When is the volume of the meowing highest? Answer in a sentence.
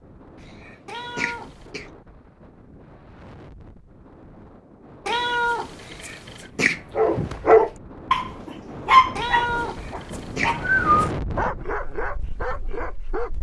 The loudest moment of the meowing is at 11 seconds.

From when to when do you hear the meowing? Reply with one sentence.
The meowing can be heard from 0.8 to 1.7 s, from 5.0 to 6.5 s and from 9.2 to 11.1 s.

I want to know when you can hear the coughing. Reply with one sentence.
The coughing can be heard from 0.4 to 1.9 s, from 5.8 to 6.8 s and from 9.6 to 10.6 s.